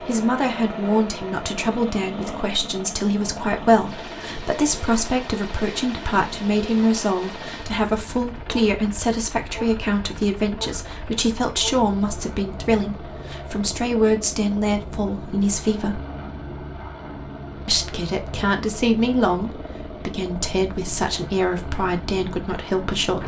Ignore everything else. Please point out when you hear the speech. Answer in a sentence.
The speech can be heard from 0.0 to 16.0 s and from 17.6 to 23.2 s.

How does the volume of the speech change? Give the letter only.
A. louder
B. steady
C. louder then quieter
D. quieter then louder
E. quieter
B.